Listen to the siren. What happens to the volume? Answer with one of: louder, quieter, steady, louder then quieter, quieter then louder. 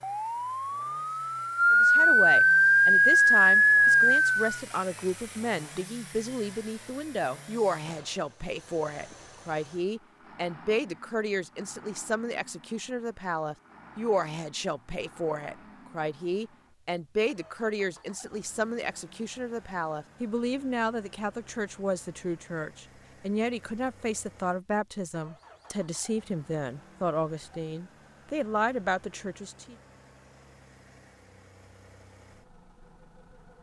louder.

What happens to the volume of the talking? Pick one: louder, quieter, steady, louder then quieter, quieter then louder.
steady.